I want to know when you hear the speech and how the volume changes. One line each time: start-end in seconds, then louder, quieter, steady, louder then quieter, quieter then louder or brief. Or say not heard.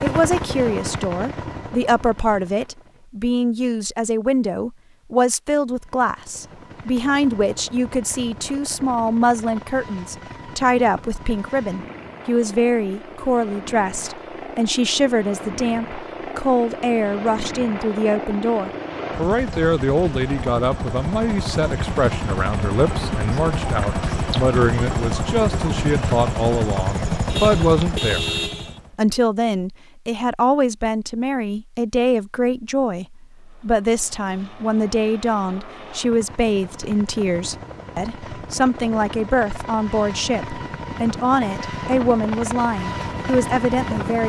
0.0-44.2 steady.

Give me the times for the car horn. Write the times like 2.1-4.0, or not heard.
27.2-28.8.